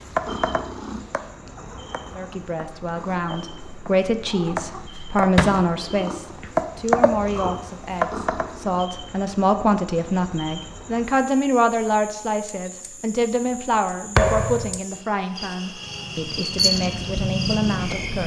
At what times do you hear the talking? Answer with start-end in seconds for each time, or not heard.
2.1-18.2.